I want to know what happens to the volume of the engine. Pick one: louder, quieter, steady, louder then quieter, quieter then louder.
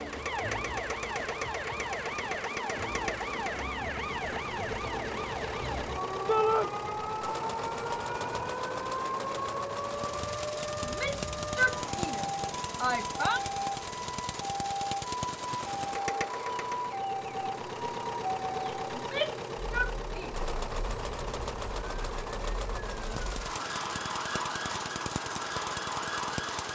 steady.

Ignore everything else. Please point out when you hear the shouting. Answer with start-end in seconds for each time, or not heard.
6.2-6.7, 10.8-13.4, 18.9-20.4.